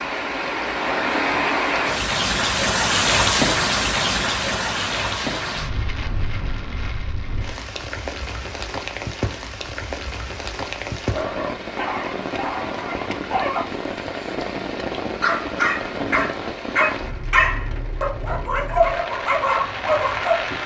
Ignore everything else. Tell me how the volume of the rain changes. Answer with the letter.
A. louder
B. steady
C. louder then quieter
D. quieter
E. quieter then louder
D.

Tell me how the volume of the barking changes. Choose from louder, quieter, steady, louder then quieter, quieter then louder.
louder.